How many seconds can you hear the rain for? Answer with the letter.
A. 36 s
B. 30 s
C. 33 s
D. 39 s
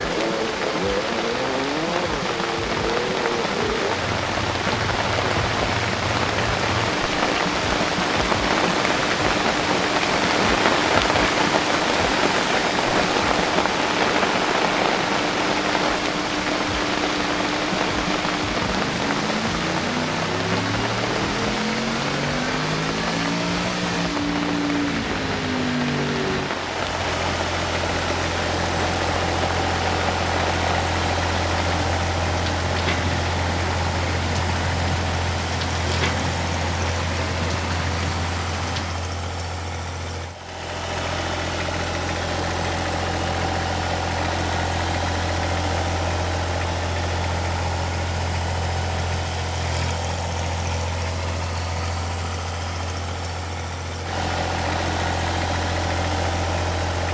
D.